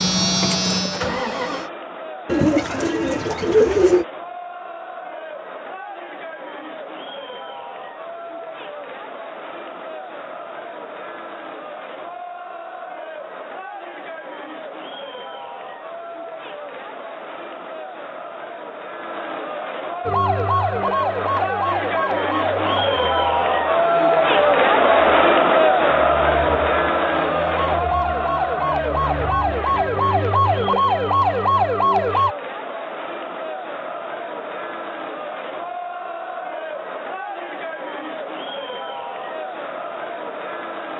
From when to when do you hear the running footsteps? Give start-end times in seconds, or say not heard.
not heard.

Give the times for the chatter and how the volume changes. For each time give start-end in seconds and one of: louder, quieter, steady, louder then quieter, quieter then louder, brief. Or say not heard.
0.1-40.9 louder then quieter.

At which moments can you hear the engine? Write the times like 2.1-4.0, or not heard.
0.0-1.7.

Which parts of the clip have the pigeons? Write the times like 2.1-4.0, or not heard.
2.2-4.0.